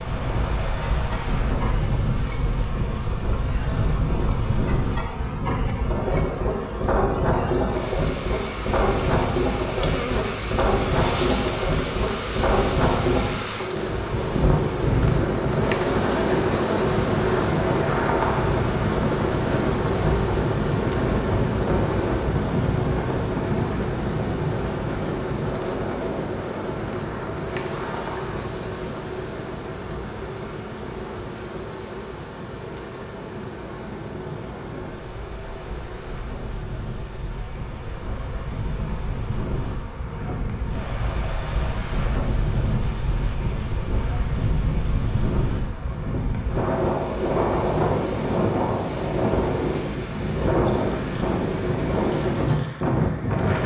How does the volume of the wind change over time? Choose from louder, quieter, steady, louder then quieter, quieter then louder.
quieter then louder.